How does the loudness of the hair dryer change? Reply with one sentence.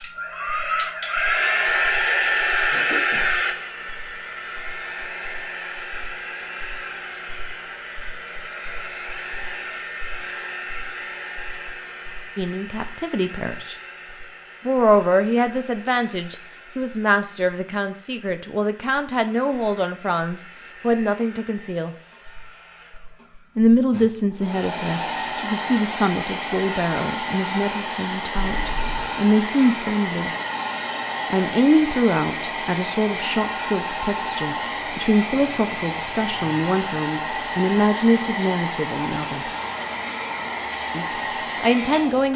The volume of the hair dryer goes down, then up.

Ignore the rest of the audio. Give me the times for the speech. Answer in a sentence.
The speech can be heard from 12.3 to 13.8 s, from 14.7 to 21.9 s, from 23.6 to 30.3 s, from 31.3 to 39.5 s and from 40.9 to 42.3 s.